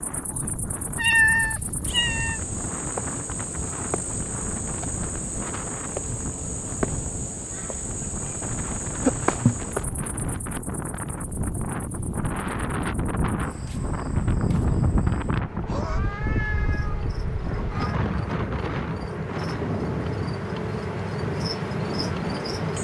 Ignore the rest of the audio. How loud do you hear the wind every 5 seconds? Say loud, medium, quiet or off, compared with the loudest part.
medium, medium, loud, loud, medium.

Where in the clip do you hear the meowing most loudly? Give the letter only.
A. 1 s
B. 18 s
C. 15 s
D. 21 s
A.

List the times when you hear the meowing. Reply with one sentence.
You can hear the meowing from 0.9 to 2.4 s and from 15.8 to 18.0 s.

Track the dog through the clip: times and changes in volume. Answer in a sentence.
The dog can't be heard in this clip.